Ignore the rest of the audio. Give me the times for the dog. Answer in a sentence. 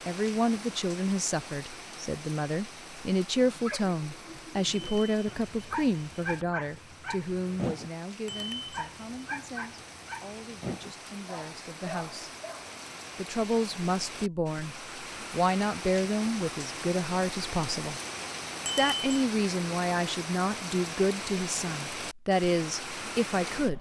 The dog can be heard from 3.4 to 12.7 s.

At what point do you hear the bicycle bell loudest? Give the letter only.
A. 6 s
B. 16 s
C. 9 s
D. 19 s
D.